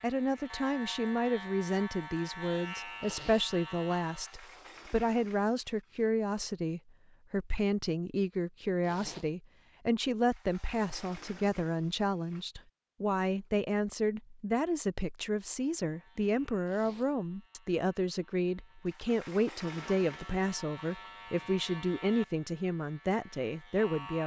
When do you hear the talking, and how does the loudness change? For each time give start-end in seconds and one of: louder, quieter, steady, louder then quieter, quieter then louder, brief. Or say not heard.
0.0-24.2 steady.